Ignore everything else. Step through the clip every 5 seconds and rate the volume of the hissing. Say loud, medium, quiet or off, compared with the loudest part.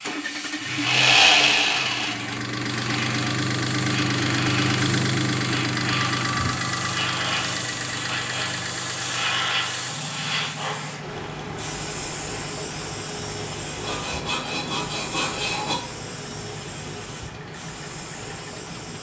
loud, loud, loud, medium.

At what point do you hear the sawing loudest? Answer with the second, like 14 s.
1 s.